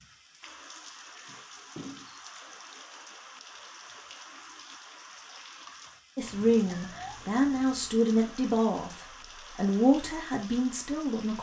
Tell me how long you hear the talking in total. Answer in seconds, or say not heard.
5 s.